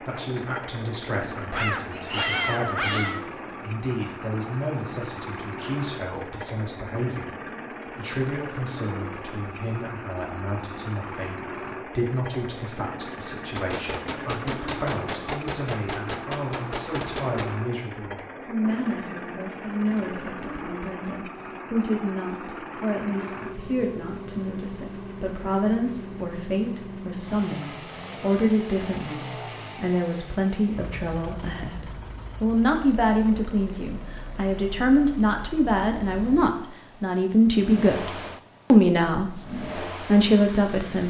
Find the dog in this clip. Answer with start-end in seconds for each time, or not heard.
1.5-3.2.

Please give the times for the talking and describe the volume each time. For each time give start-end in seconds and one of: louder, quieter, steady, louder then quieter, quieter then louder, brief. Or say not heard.
0.1-7.3 steady
8.0-38.1 louder
38.7-41.0 brief.